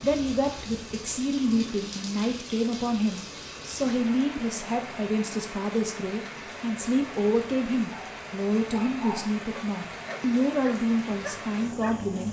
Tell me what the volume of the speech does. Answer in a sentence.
The loudness of the speech stays about the same.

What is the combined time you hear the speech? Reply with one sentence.
The speech can be heard for 12 seconds in total.